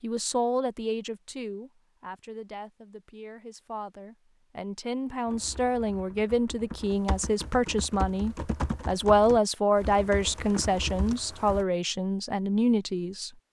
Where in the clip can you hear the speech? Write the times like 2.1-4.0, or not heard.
0.0-13.3.